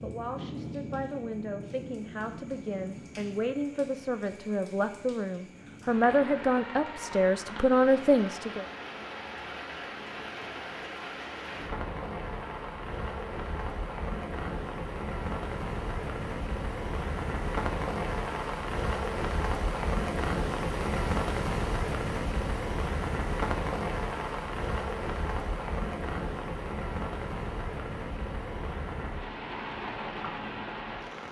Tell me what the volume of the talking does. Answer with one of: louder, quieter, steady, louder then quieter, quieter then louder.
louder.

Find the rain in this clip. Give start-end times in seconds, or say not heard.
0.0-31.2.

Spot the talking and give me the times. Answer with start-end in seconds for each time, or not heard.
0.0-8.7.